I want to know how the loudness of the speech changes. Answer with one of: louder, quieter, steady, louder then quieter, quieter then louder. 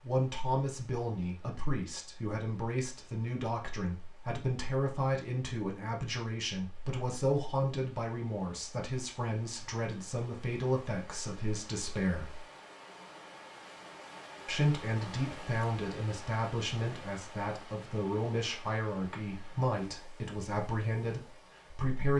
steady.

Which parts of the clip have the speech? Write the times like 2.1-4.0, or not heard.
0.0-12.4, 14.4-22.1.